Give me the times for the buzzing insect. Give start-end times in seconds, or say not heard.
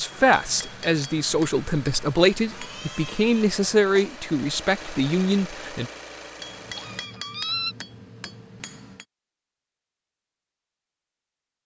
not heard.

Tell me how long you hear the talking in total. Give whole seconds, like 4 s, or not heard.
6 s.